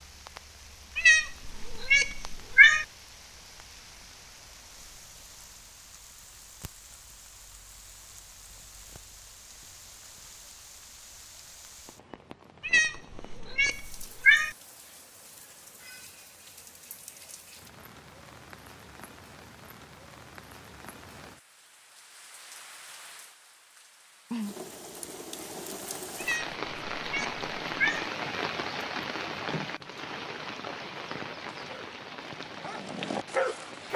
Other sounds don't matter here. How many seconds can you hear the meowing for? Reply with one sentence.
You can hear the meowing for 6 seconds altogether.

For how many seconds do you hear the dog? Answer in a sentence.
The dog can be heard for 2 seconds in total.